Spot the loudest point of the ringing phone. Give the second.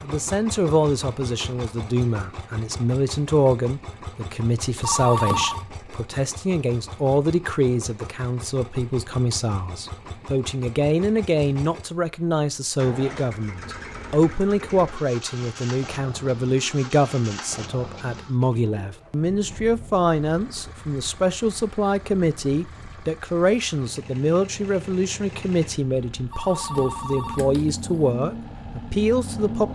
5 s.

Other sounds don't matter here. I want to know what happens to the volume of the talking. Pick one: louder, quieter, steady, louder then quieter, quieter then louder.
steady.